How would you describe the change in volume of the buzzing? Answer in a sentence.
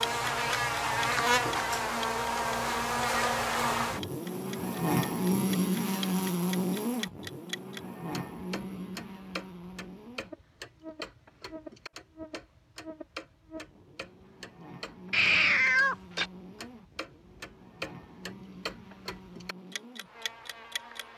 The loudness of the buzzing goes down.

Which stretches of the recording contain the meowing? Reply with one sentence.
The meowing can be heard from 15.1 to 16.2 s.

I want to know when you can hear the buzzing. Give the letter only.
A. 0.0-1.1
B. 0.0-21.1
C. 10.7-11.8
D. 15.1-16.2
B.